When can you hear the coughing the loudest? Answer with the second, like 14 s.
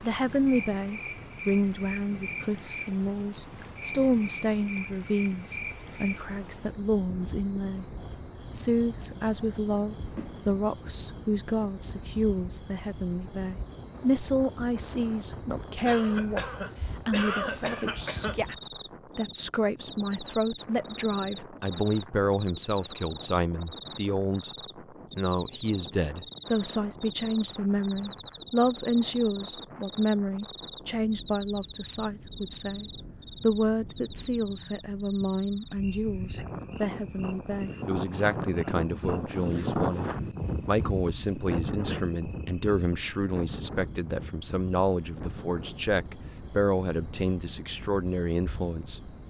17 s.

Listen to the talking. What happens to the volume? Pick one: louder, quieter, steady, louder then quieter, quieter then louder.
steady.